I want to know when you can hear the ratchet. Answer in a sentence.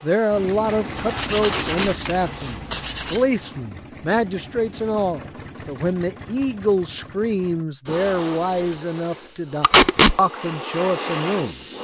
The ratchet can't be heard in this clip.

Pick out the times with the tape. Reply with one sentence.
You can hear the tape from 1.4 to 1.8 s and from 9.6 to 10.2 s.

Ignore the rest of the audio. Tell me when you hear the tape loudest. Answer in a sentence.
The volume of the tape peaks at 10 seconds.